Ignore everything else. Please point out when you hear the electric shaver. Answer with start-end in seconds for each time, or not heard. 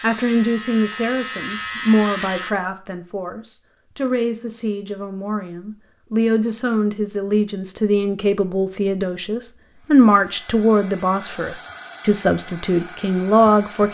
0.0-2.5.